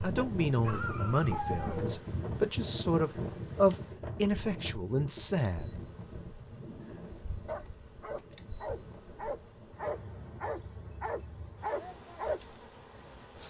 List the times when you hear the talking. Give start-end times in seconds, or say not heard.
0.0-5.7.